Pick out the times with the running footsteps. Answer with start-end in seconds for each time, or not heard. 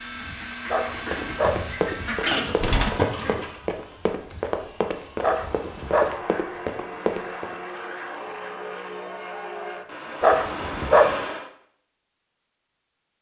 1.1-7.5.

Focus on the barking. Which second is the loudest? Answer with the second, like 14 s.
11 s.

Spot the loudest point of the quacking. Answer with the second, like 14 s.
2 s.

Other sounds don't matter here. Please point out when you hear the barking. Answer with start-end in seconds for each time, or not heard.
0.7-1.6, 5.2-6.2, 10.2-11.2.